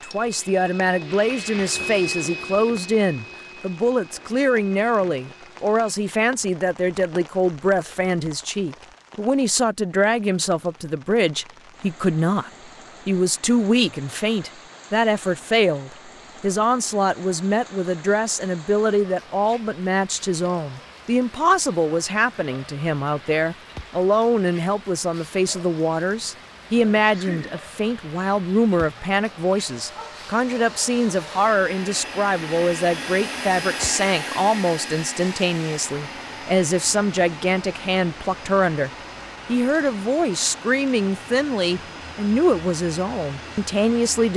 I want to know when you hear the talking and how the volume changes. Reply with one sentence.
The talking can be heard from 0.0 to 44.3 s, at a steady volume.